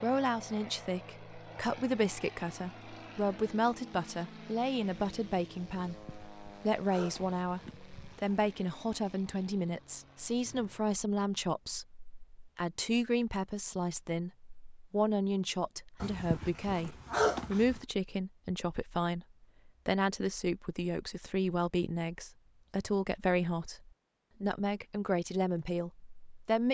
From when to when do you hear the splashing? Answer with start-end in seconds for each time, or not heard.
not heard.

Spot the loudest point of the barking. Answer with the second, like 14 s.
17 s.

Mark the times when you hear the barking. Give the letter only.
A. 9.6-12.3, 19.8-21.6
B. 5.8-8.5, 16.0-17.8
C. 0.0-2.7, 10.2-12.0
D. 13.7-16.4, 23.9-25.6
B.